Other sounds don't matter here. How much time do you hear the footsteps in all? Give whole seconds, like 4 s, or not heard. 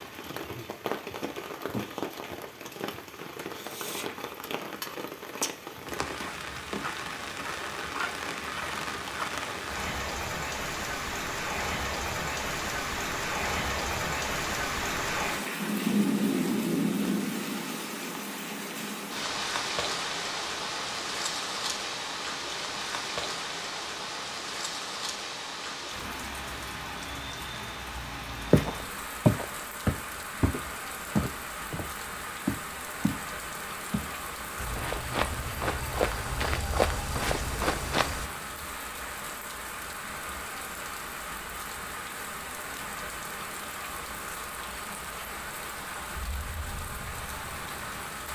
9 s.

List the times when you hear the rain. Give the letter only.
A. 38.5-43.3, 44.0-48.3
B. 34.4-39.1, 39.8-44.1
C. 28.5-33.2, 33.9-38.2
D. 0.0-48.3
D.